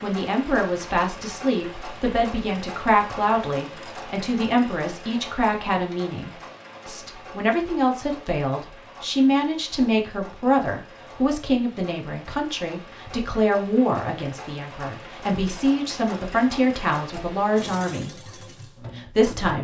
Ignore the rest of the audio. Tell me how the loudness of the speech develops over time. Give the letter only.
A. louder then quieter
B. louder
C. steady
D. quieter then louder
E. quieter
C.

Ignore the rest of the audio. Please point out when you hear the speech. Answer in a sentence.
The speech can be heard from 0.0 to 19.5 s.